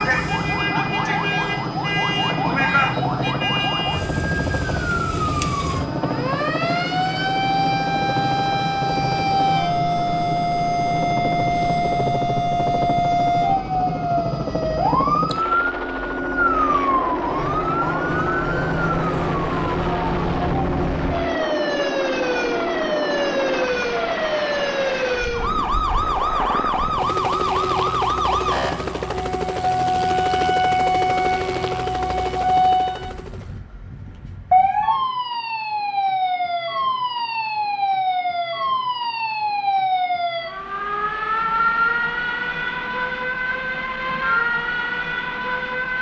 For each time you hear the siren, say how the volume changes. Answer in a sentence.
The siren can be heard from 0.0 to 45.9 s, at a steady volume.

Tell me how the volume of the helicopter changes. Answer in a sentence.
The loudness of the helicopter stays about the same.